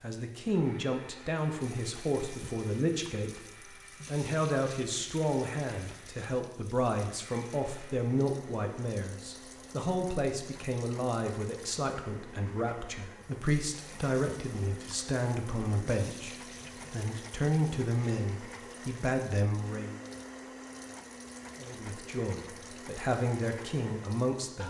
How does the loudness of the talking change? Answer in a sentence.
The loudness of the talking stays about the same.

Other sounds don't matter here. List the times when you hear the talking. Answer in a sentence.
The talking can be heard from 0.0 to 19.9 s and from 21.6 to 24.6 s.